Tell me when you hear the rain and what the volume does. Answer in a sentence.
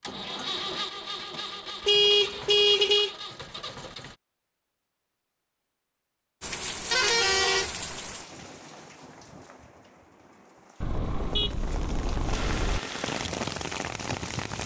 The rain can be heard from 6.4 to 14.6 s, getting quieter then louder.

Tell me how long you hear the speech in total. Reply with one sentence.
The speech can't be heard in this clip.